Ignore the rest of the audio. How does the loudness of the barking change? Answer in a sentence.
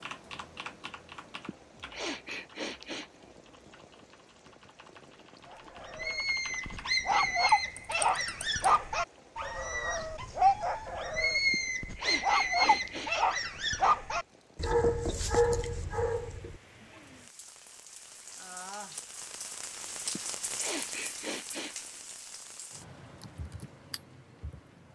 The loudness of the barking stays about the same.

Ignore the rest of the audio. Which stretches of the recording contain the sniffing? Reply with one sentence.
You can hear the sniffing from 1.4 to 3.2 s, from 11.5 to 13.2 s and from 20.1 to 21.9 s.